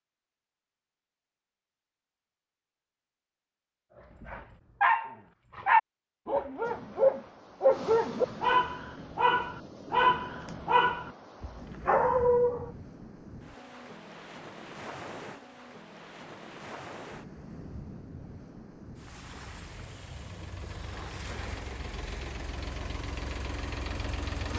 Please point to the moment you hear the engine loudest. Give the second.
24 s.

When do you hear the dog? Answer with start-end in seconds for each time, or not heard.
4.2-12.7.